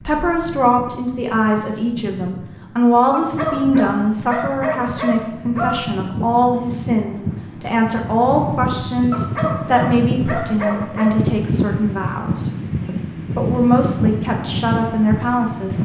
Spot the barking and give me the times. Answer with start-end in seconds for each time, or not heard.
3.1-5.7, 9.1-11.2.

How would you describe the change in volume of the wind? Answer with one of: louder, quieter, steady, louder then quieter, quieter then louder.
louder.